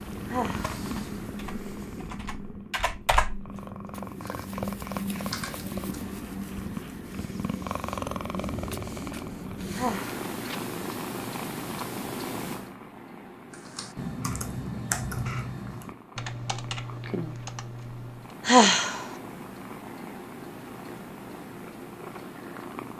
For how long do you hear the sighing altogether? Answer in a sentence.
You can hear the sighing for 2 seconds altogether.